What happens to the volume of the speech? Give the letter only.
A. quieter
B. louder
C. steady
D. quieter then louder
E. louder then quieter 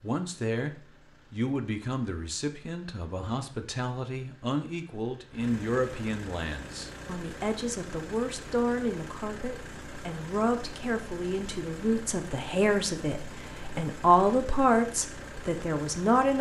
B.